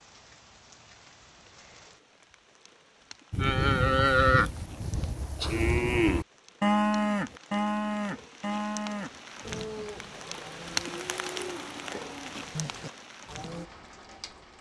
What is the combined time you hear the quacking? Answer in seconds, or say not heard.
not heard.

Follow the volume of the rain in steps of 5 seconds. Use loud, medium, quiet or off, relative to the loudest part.
quiet, medium, loud.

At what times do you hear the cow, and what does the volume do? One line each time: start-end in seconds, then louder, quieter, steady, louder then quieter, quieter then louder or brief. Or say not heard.
3.3-13.7 quieter.